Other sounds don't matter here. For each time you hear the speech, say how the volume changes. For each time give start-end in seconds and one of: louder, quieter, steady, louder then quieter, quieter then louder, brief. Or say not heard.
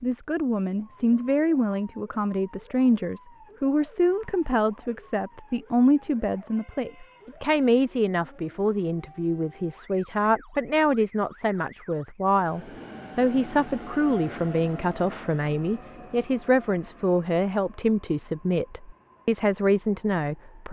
0.0-20.6 steady.